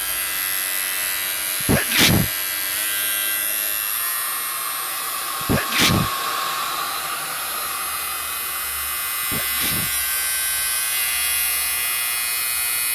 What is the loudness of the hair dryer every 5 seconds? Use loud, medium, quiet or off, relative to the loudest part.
medium, loud, medium.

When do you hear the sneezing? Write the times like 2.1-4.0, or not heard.
1.6-2.3, 5.4-6.1, 9.2-9.9.